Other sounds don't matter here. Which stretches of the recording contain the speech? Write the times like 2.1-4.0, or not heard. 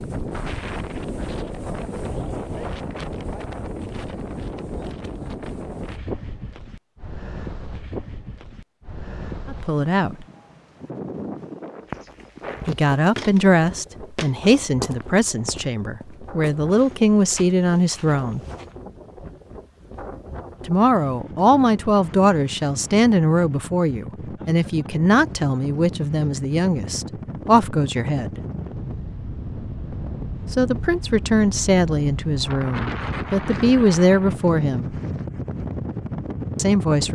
9.5-10.2, 12.7-18.4, 20.6-28.4, 30.5-35.0, 36.5-37.1.